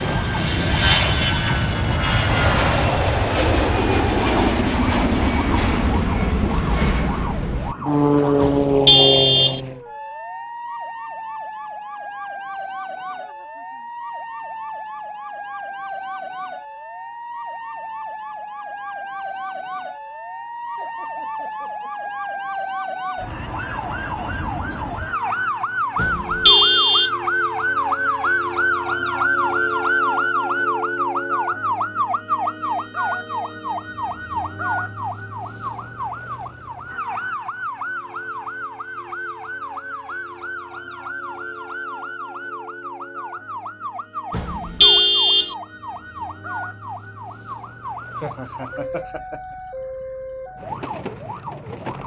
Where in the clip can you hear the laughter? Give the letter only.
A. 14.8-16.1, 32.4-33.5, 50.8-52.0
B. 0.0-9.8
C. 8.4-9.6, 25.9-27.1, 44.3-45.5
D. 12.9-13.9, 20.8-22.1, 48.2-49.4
D.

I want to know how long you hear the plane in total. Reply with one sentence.
You can hear the plane for 10 seconds altogether.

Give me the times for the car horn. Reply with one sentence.
You can hear the car horn from 8.4 to 9.6 s, from 25.9 to 27.1 s and from 44.3 to 45.5 s.